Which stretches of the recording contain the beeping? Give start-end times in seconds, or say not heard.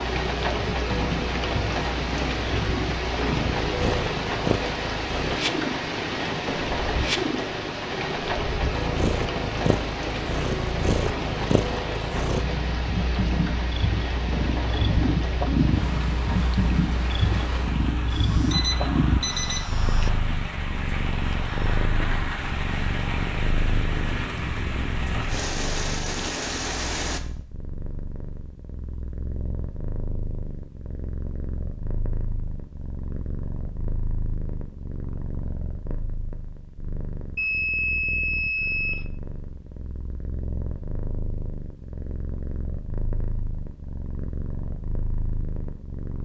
18.1-20.1, 37.4-39.0.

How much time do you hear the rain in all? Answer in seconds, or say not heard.
27 s.